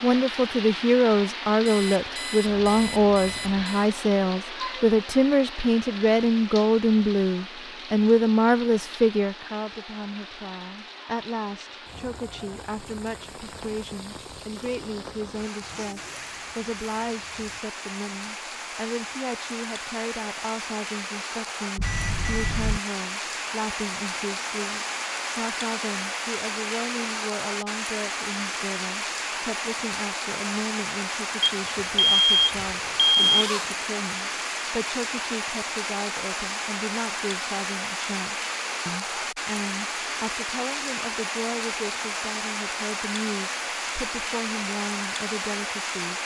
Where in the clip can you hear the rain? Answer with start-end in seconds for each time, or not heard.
0.0-46.1.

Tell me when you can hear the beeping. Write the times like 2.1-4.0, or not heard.
1.6-3.9, 21.8-22.8, 31.4-33.5.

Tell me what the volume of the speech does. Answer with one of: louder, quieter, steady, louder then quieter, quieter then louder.
quieter.